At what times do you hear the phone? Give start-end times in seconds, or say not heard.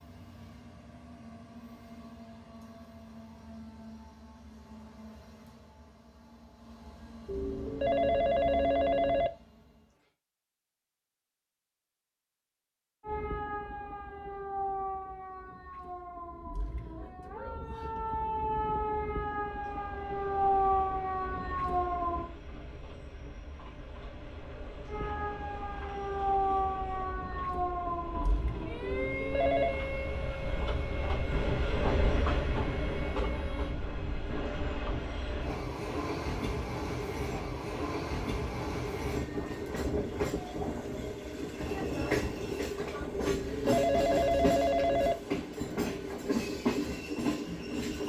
7.2-9.3, 28.8-29.8, 43.1-45.1.